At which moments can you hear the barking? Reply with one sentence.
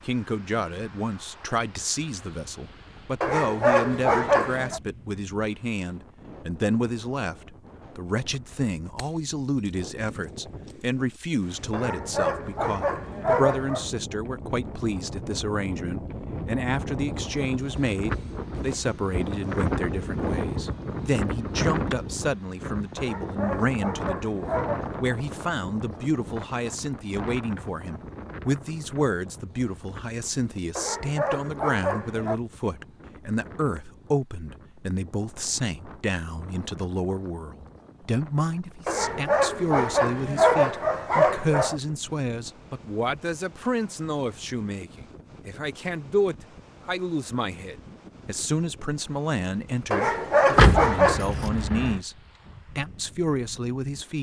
You can hear the barking from 3.2 to 4.8 s, from 11.7 to 13.9 s, from 22.9 to 24.9 s, from 30.8 to 32.4 s, from 38.9 to 41.8 s and from 49.9 to 51.3 s.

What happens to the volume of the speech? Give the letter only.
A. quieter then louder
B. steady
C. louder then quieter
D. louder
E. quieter
B.